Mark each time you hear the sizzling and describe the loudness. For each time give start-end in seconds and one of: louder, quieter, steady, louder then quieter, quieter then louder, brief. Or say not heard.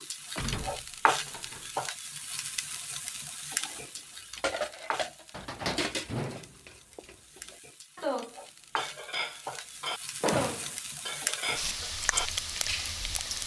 0.0-13.4 quieter then louder.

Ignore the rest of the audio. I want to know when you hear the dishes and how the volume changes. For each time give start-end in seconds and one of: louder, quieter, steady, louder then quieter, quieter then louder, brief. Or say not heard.
3.6-13.1 steady.